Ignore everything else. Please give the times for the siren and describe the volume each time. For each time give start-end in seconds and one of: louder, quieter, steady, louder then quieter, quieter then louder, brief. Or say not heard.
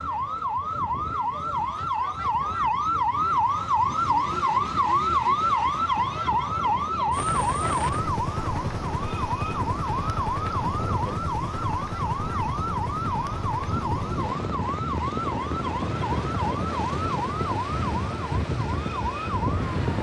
0.0-19.9 quieter.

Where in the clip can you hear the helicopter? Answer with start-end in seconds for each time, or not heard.
7.1-19.9.